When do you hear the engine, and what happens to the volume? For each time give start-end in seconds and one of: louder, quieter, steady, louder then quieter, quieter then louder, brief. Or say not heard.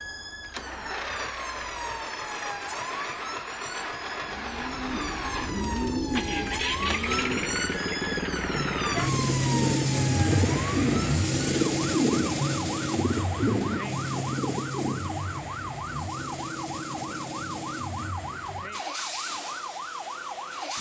0.4-20.7 louder then quieter.